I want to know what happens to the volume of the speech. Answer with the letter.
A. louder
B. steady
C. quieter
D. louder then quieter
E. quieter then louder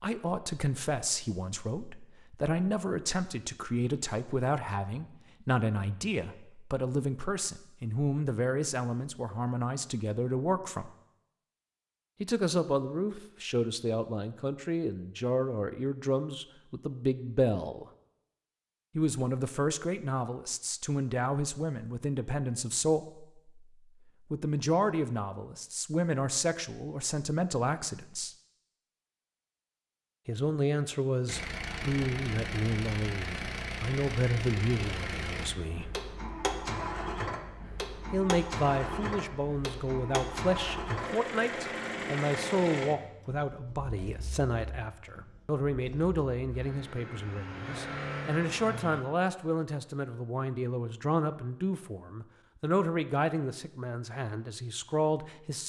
B.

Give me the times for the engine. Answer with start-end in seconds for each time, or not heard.
31.2-49.0.